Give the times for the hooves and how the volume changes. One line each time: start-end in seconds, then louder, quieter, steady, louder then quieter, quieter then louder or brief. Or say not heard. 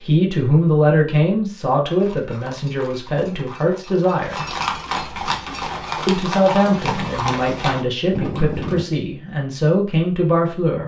1.9-8.8 louder.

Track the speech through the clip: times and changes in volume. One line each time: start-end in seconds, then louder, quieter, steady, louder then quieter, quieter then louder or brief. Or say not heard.
0.0-4.5 quieter
6.0-10.8 quieter then louder.